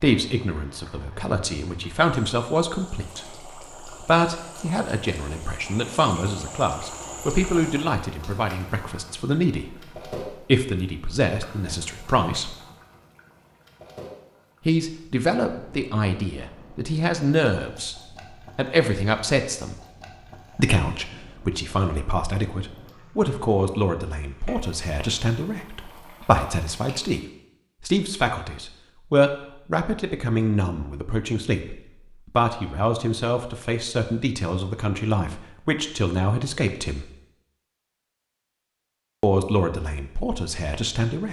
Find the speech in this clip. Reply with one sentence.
You can hear the speech from 0.0 to 12.6 s, from 14.7 to 17.9 s, from 18.6 to 19.8 s, from 20.6 to 27.2 s, from 27.8 to 37.0 s and from 39.2 to 41.2 s.